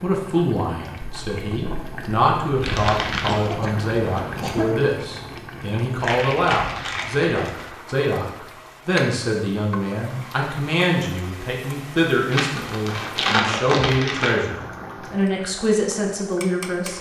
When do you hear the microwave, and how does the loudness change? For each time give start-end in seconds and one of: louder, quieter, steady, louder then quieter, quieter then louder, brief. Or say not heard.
not heard.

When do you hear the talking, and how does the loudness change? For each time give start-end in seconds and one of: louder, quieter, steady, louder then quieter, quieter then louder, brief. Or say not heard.
0.0-16.9 steady.